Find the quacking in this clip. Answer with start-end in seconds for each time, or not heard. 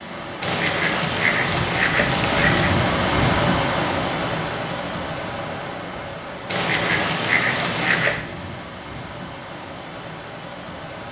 0.4-2.8, 6.5-8.2.